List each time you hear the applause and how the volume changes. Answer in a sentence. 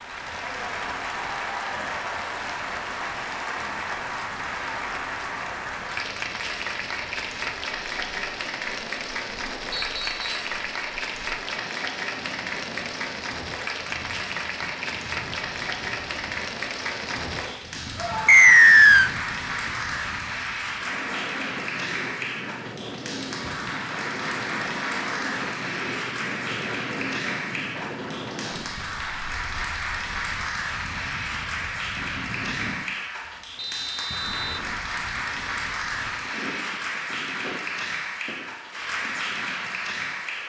The applause can be heard from 0.0 to 40.4 s, at a steady volume.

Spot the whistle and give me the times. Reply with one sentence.
The whistle can be heard from 9.7 to 10.3 s, from 18.2 to 19.1 s and from 33.5 to 34.6 s.